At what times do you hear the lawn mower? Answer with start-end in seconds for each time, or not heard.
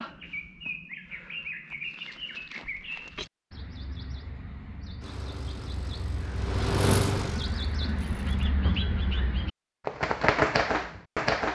5.0-8.5.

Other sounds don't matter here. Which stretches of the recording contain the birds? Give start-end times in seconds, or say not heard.
0.0-11.5.